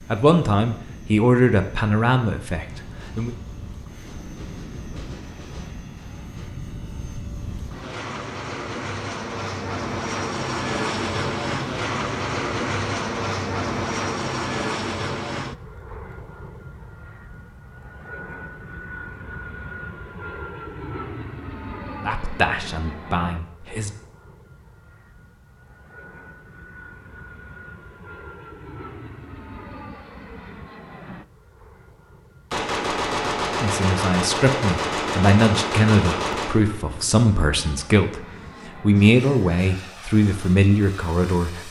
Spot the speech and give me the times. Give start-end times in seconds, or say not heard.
0.0-3.3, 22.1-23.9, 33.5-41.6.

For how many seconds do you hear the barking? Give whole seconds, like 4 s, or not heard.
not heard.